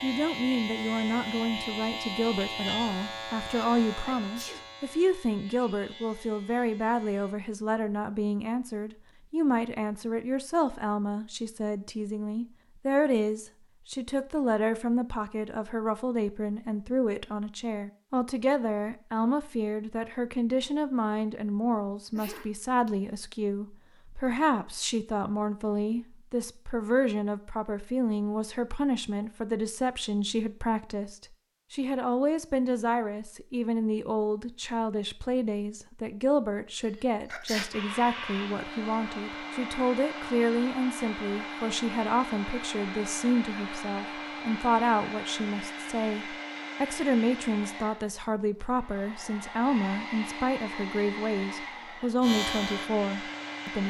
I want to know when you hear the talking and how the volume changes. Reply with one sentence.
You can hear the talking from 0.0 to 53.8 s, at a steady volume.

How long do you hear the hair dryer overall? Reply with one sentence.
You can hear the hair dryer for 16 seconds altogether.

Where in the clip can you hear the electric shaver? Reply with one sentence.
The electric shaver can be heard from 0.0 to 7.3 s and from 52.2 to 53.8 s.